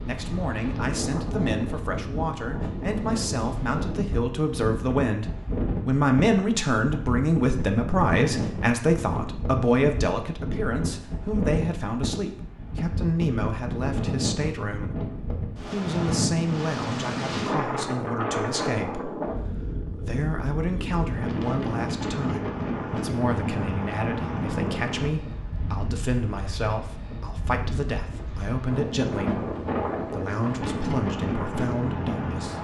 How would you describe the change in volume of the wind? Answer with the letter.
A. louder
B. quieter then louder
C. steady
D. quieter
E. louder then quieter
C.